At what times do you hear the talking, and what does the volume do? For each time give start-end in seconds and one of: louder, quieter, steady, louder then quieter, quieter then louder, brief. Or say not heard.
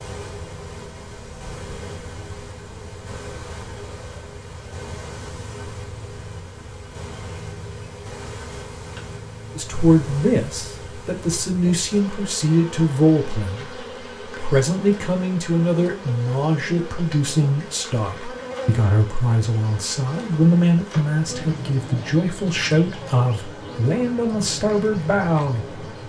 9.6-25.8 steady.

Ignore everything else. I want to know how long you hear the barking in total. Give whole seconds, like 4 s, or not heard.
not heard.